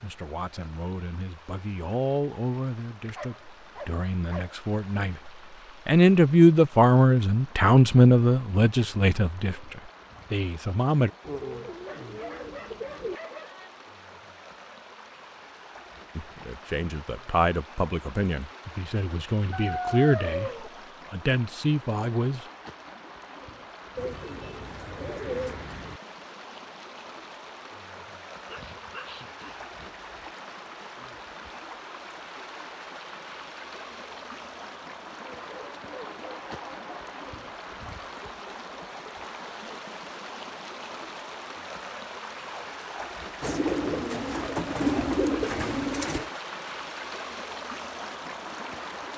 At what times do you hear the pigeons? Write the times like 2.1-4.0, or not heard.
11.2-13.2, 23.9-26.0, 43.4-46.3.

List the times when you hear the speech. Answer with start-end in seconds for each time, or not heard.
0.0-11.1, 16.1-20.5, 21.1-22.4.